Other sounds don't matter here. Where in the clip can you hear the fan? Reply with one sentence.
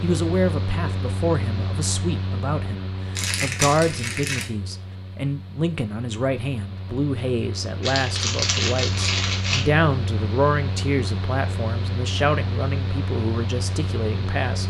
The fan can be heard from 0.0 to 14.6 s.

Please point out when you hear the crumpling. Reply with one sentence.
The crumpling can be heard from 3.1 to 4.5 s and from 7.8 to 9.7 s.